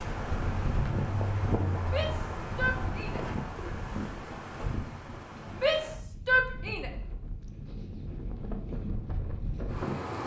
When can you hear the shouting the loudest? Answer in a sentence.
The loudest moment of the shouting is at 6 seconds.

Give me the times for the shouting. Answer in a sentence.
The shouting can be heard from 1.9 to 3.2 s and from 5.6 to 6.9 s.